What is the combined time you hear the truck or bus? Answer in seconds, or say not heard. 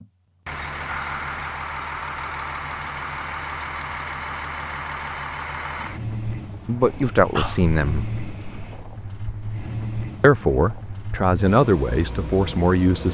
13 s.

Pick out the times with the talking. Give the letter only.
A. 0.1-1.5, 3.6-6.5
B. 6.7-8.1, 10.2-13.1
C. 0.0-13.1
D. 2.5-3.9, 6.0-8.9
B.